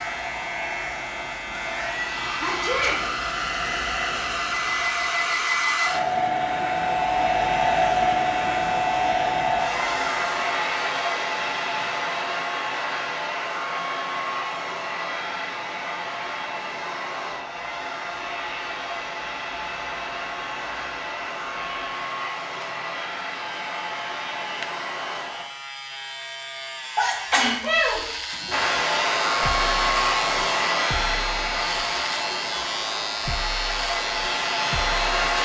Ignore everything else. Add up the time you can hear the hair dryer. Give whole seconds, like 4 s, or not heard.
32 s.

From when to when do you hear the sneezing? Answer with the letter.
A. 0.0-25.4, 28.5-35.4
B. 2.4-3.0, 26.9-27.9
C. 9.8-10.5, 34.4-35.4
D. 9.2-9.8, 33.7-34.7
B.